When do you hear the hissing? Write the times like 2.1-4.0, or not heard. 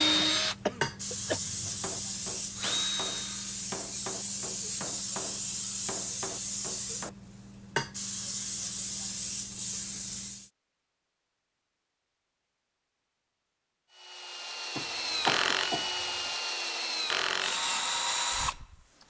0.0-10.5.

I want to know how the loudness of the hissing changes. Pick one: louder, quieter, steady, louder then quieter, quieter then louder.
steady.